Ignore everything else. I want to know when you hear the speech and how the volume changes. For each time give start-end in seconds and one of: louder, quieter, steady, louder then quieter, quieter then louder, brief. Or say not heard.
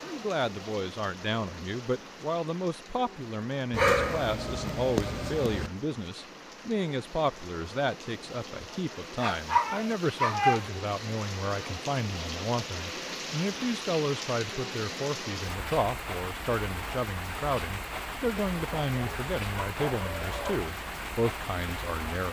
0.0-22.2 steady.